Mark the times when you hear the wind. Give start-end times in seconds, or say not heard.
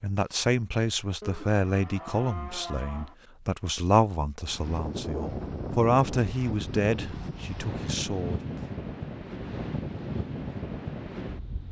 4.5-11.6.